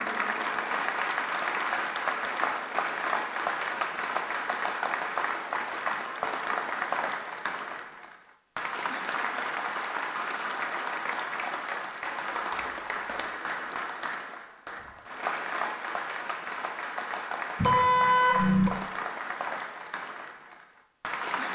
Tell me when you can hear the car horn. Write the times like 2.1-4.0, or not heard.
17.6-18.7.